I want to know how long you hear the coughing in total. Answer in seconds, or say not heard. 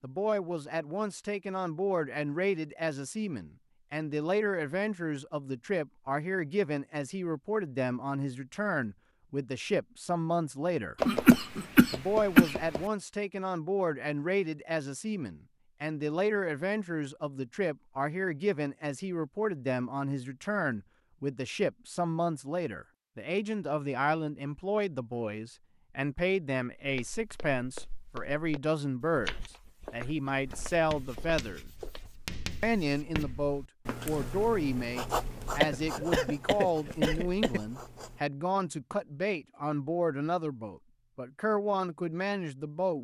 4 s.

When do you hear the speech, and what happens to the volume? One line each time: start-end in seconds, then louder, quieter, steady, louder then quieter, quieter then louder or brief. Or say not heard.
0.0-10.9 steady
11.9-31.7 steady
32.6-43.0 steady.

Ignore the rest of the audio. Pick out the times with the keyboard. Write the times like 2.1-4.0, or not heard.
not heard.